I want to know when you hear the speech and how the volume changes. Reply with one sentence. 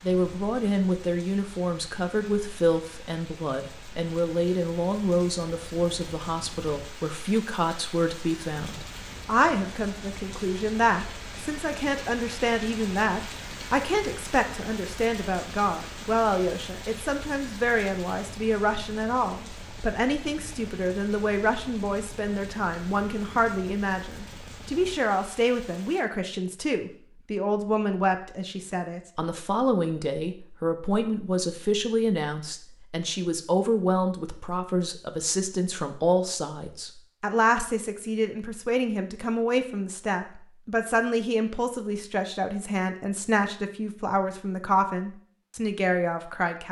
The speech can be heard from 0.0 to 46.6 s, at a steady volume.